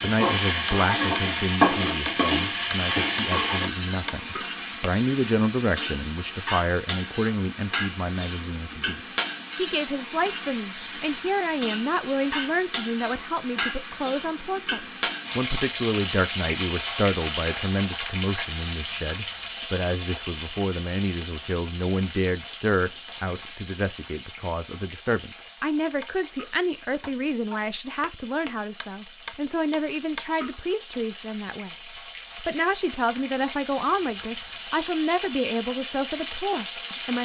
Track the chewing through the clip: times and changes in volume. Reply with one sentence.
The chewing can't be heard in this clip.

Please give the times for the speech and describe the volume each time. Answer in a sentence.
You can hear the speech from 0.0 to 31.8 s, at a steady volume; and from 32.4 to 37.1 s, at a steady volume.